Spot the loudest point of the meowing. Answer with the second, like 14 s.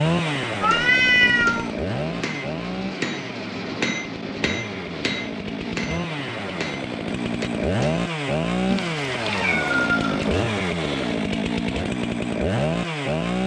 1 s.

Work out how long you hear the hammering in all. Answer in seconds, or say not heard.
8 s.